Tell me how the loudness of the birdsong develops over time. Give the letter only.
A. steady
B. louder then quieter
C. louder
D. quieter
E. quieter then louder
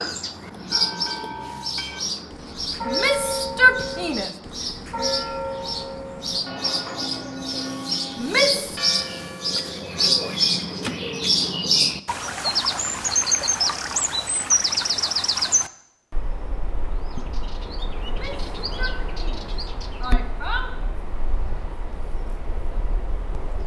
B.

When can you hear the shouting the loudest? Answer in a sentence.
The loudest moment of the shouting is at 4 seconds.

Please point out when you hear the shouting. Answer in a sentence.
The shouting can be heard from 2.9 to 4.3 s, from 8.2 to 8.8 s and from 18.1 to 20.7 s.